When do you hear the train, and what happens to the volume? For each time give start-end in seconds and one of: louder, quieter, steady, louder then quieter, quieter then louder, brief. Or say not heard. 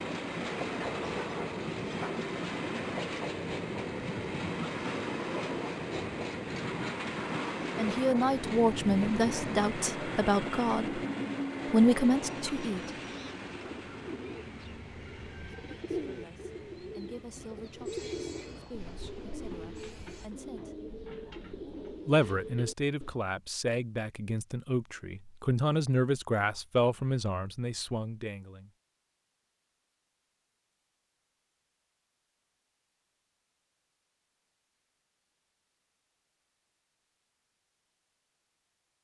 0.0-20.3 quieter.